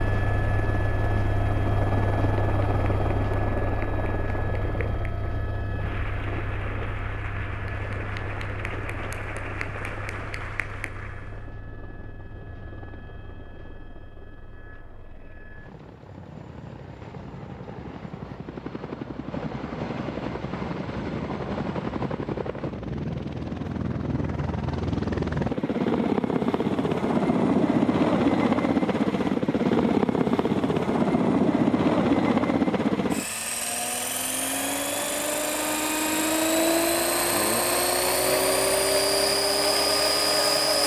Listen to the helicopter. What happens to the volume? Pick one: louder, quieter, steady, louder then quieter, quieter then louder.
quieter then louder.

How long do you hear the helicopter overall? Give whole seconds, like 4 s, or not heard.
41 s.